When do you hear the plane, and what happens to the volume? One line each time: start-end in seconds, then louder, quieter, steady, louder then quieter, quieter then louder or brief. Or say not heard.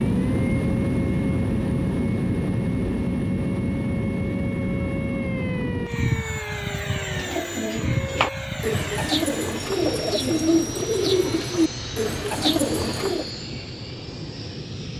0.0-14.9 quieter.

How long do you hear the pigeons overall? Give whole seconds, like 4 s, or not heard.
6 s.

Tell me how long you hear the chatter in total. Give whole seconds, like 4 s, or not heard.
not heard.